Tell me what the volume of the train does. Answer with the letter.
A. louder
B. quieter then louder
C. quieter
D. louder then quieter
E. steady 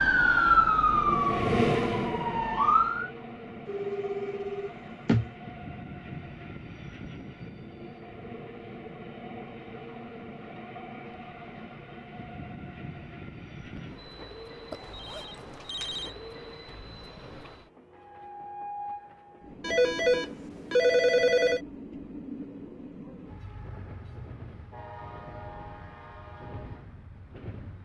C.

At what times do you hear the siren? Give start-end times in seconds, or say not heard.
0.0-3.1.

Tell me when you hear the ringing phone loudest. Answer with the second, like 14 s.
21 s.